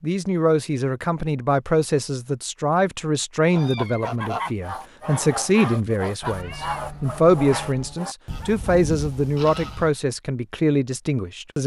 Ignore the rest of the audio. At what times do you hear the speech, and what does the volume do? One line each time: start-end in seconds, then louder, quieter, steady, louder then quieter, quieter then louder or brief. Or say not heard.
0.0-11.6 steady.